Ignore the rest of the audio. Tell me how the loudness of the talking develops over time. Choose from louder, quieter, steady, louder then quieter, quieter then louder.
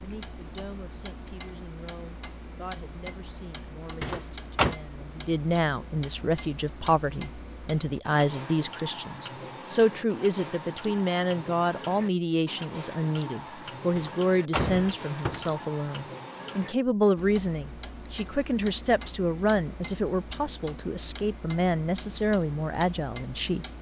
louder.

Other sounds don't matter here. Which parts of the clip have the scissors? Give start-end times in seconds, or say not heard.
not heard.